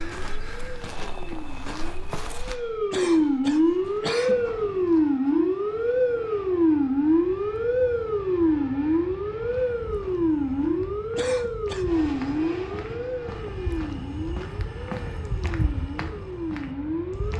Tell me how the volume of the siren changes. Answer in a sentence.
The volume of the siren goes down.